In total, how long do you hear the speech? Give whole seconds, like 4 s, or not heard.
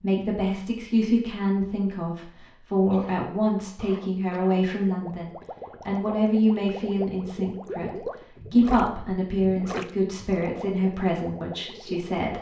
12 s.